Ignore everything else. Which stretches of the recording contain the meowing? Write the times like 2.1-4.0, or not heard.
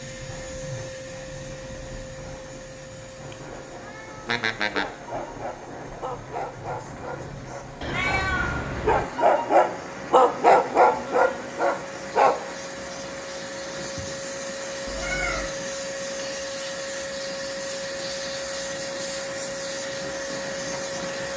3.3-4.8, 7.8-9.1, 14.8-15.5.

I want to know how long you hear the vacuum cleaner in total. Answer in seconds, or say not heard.
21 s.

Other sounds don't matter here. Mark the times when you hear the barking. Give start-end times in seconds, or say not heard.
4.7-12.3.